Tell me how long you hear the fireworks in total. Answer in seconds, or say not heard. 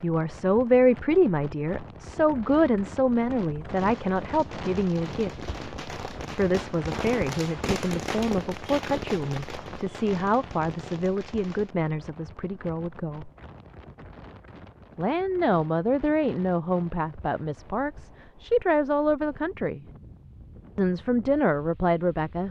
8 s.